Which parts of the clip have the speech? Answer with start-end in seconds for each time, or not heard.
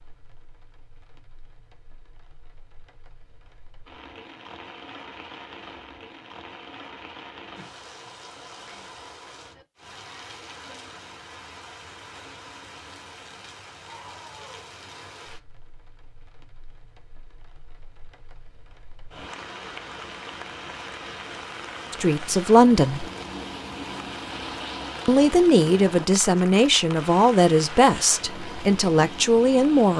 21.9-23.1, 25.1-29.9.